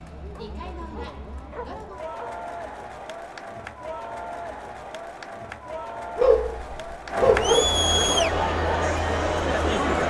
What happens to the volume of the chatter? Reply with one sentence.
The loudness of the chatter goes up.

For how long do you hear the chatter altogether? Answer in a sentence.
The chatter can be heard for 10 seconds in total.